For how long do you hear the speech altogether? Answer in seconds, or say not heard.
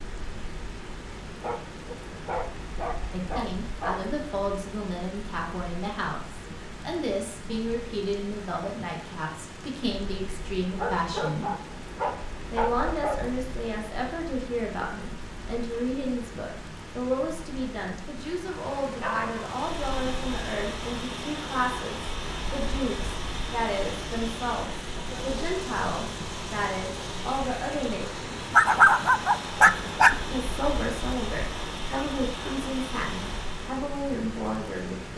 29 s.